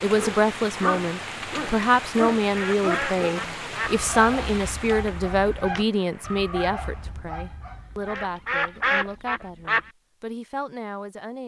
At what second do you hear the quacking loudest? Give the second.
9 s.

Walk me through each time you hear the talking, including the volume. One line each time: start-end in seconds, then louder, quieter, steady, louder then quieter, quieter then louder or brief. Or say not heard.
0.0-11.4 quieter.